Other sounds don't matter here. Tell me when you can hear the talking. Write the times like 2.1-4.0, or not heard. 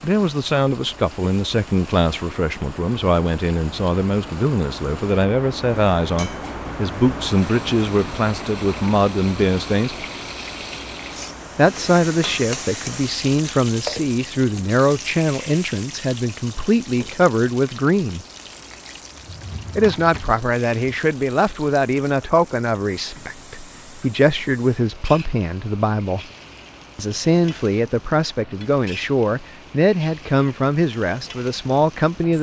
0.0-10.1, 11.6-18.2, 19.8-26.2, 26.9-32.3.